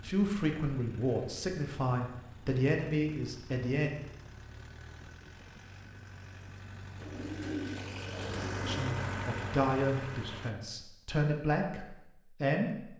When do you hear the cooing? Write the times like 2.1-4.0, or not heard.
7.0-8.9.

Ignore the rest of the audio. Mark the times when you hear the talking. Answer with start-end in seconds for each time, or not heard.
0.0-4.0, 8.7-12.9.